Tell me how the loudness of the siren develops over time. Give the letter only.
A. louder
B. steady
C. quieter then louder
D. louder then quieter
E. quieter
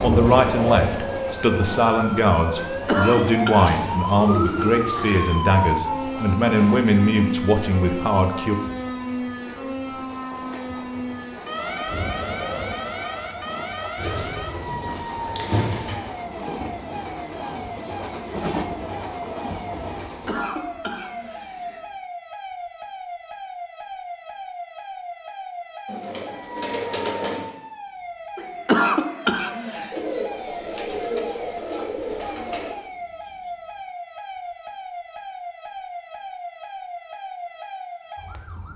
E.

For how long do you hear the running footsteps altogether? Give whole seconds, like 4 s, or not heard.
not heard.